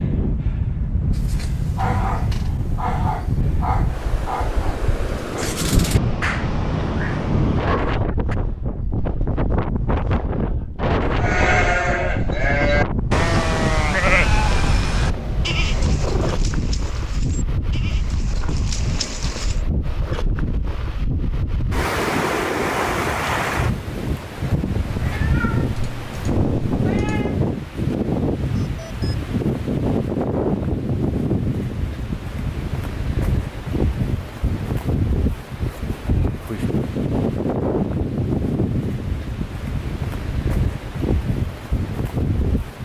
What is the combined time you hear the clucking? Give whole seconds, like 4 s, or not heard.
not heard.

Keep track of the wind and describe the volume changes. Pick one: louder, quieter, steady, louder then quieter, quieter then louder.
steady.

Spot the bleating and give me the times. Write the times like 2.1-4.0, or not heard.
11.2-19.6.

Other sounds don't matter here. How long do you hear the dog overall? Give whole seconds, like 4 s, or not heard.
7 s.